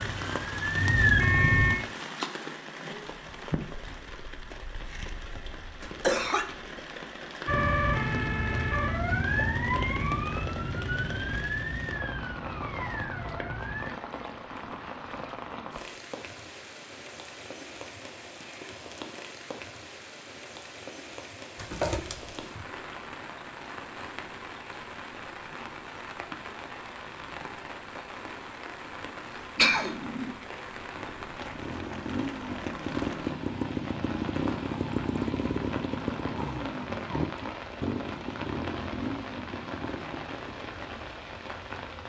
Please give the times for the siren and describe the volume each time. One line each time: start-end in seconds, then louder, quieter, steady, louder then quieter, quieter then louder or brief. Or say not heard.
0.0-1.8 brief
7.5-13.9 quieter.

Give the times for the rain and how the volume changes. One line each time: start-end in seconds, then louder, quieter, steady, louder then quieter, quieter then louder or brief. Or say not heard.
0.0-42.0 steady.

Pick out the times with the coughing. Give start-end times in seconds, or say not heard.
5.8-6.5, 21.6-22.4, 29.6-30.4.